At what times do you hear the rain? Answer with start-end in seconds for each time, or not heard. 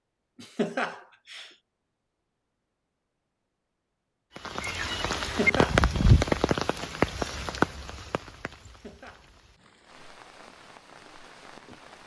4.3-12.0.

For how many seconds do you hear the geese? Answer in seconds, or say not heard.
not heard.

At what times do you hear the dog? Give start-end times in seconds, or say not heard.
not heard.